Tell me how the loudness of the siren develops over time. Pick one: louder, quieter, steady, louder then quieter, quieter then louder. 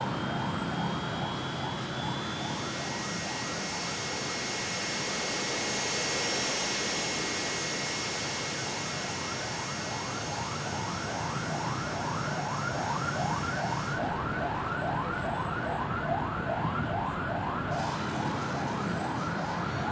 quieter then louder.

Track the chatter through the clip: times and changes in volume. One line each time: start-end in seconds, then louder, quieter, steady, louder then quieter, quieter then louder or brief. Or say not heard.
not heard.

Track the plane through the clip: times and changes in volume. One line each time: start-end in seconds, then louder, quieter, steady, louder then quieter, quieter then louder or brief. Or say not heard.
0.0-19.8 louder then quieter.